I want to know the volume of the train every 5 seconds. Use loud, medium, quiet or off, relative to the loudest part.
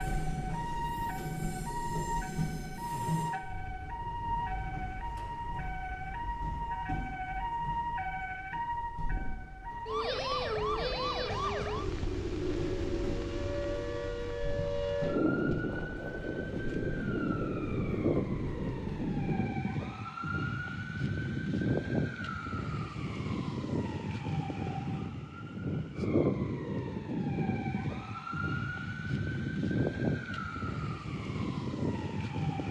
loud, medium, medium, medium, off, off, off.